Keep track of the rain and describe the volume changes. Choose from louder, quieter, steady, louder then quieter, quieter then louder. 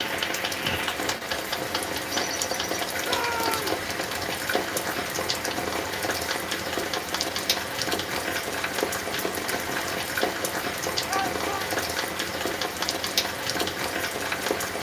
steady.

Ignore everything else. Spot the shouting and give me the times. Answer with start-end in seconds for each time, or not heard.
3.0-3.6, 11.1-11.7.